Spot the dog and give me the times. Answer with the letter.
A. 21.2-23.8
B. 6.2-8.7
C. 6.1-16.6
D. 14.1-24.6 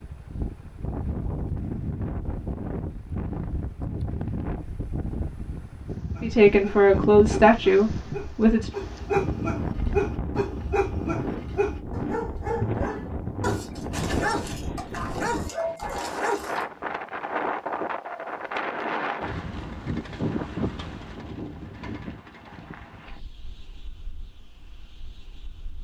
C.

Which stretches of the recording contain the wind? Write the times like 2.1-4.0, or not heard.
0.0-25.7.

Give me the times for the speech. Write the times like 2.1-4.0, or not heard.
6.2-8.7.